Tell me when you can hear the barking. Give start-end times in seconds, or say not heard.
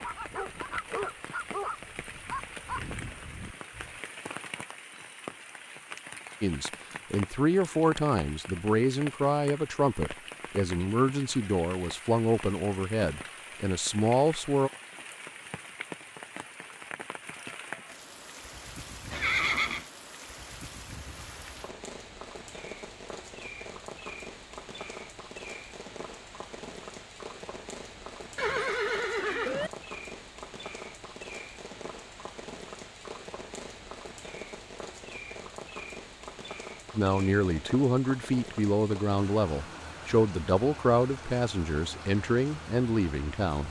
0.0-4.0.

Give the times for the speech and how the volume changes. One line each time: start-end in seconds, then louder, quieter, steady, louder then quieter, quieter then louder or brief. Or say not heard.
6.4-14.7 steady
37.0-43.6 steady.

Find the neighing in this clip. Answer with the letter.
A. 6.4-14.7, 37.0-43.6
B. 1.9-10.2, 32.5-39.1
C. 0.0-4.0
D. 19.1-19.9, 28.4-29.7
D.